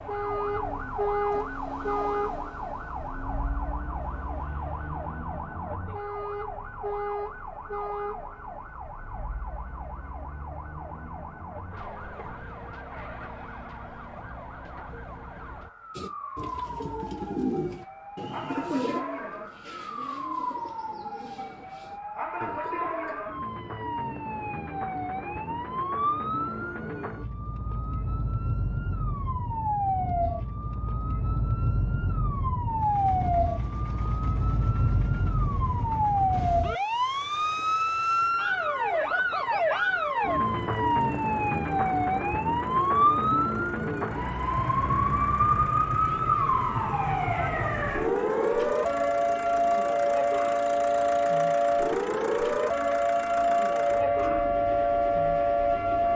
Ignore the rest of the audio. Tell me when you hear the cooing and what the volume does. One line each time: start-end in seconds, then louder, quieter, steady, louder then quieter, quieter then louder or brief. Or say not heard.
15.9-23.2 quieter.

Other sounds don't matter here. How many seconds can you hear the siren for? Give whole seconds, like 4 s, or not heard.
56 s.